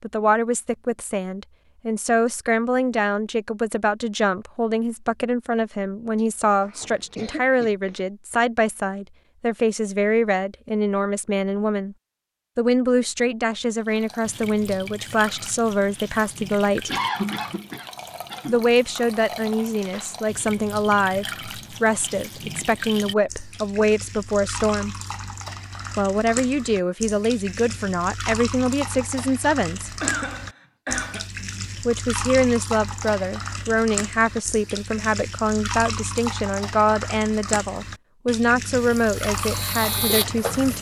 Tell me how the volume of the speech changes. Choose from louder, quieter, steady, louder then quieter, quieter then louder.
steady.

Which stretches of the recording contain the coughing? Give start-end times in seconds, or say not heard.
6.2-8.1, 16.9-18.6, 30.0-31.2.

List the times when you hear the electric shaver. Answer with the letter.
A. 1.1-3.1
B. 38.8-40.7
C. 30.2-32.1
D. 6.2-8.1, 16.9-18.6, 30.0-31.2
B.